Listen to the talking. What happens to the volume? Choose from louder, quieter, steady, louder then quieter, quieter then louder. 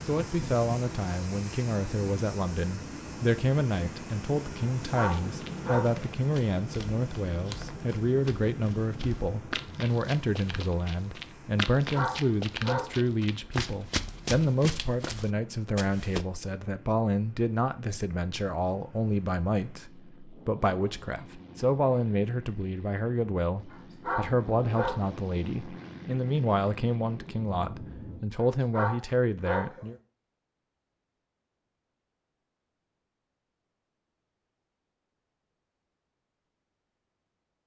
steady.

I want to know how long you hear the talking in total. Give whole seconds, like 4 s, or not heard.
30 s.